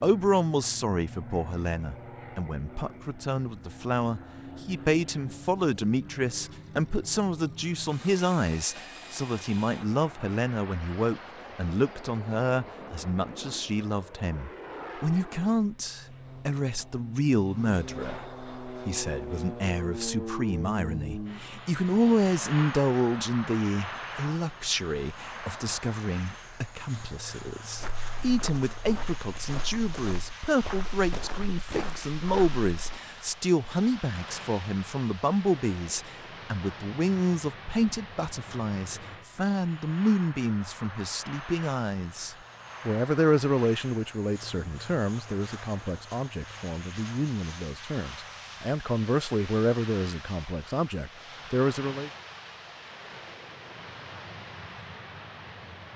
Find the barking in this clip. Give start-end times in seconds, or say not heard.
not heard.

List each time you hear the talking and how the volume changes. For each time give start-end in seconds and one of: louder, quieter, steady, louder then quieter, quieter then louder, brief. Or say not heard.
0.0-52.1 steady.